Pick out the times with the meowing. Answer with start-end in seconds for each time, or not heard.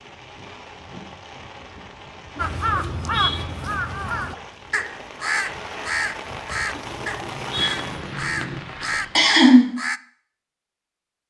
2.4-3.5, 6.7-8.6.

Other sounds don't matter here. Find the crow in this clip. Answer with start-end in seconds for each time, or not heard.
2.4-10.0.